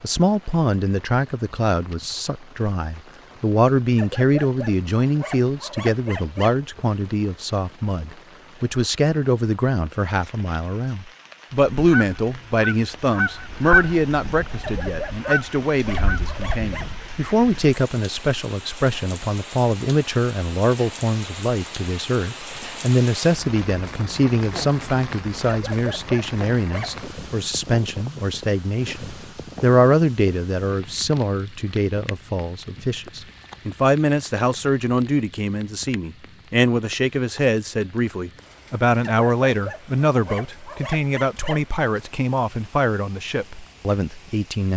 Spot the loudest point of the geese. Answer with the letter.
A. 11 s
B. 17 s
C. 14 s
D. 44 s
C.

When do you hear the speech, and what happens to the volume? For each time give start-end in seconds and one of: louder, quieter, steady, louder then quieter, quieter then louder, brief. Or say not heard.
0.0-44.7 steady.